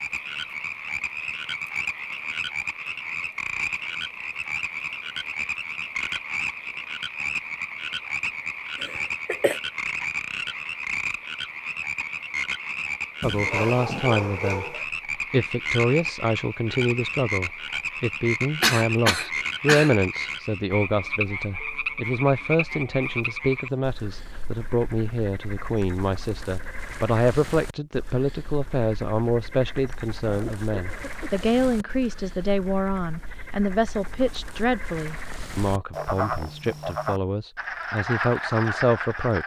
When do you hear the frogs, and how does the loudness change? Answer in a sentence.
The frogs can be heard from 0.0 to 39.4 s, getting quieter then louder.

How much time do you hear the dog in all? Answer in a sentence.
You can hear the dog for 2 seconds altogether.